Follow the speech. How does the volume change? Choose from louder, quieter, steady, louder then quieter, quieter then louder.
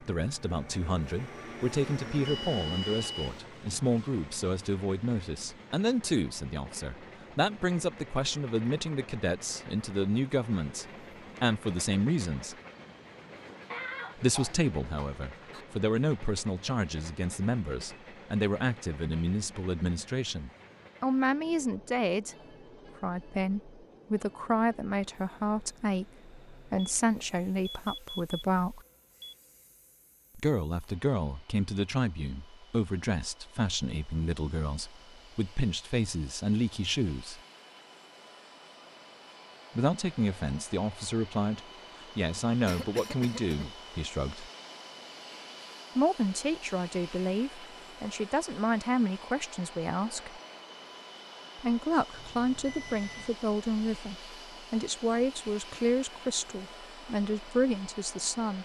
steady.